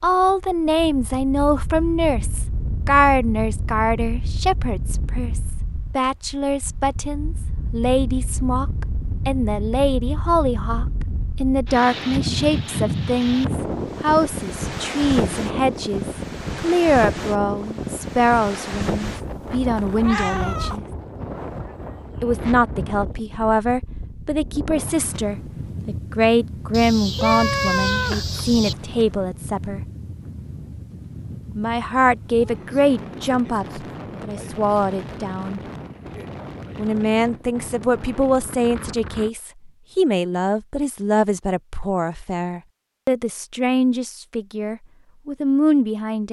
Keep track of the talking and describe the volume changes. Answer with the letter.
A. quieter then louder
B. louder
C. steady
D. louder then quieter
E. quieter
C.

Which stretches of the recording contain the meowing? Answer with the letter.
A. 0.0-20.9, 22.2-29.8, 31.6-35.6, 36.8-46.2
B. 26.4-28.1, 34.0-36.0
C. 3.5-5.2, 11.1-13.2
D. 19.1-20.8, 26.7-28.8
D.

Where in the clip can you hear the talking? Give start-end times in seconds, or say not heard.
0.0-20.9, 22.2-29.8, 31.6-35.6, 36.8-46.2.